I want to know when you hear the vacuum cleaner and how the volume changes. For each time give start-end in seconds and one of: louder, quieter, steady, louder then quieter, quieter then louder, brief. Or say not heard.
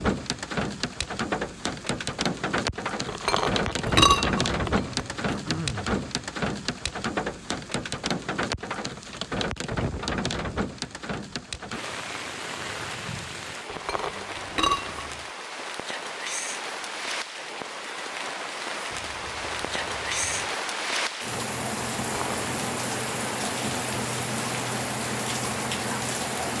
not heard.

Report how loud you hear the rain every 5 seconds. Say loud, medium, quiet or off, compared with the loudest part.
loud, loud, medium, medium, loud, loud.